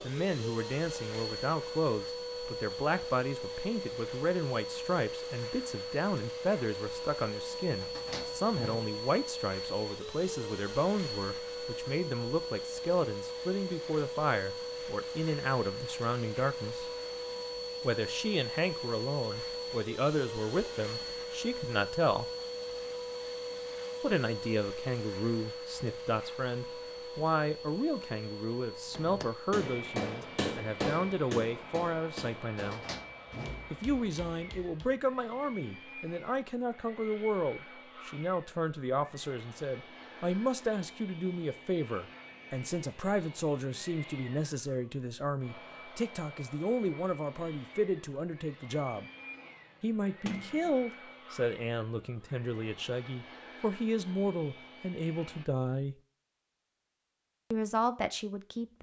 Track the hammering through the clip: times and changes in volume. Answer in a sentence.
The hammering can be heard from 28.9 to 35.0 s, getting quieter.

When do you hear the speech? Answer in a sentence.
You can hear the speech from 0.0 to 16.9 s, from 17.8 to 22.2 s, from 24.0 to 32.8 s, from 33.7 to 49.0 s, from 49.8 to 56.0 s and from 57.5 to 58.7 s.